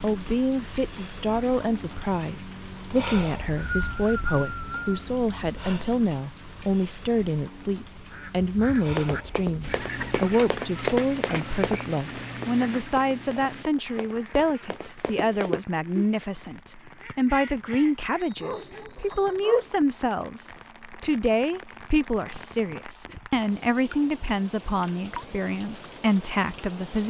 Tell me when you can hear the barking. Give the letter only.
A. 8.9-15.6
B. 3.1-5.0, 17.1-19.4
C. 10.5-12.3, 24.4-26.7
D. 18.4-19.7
D.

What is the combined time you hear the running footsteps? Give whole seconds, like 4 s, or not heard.
7 s.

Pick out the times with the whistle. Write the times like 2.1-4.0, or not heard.
3.1-5.0, 17.1-19.4.